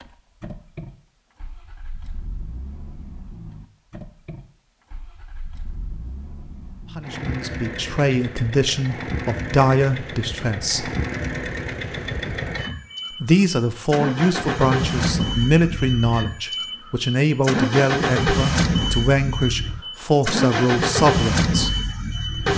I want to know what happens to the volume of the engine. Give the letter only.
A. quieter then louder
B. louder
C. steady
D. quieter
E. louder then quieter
B.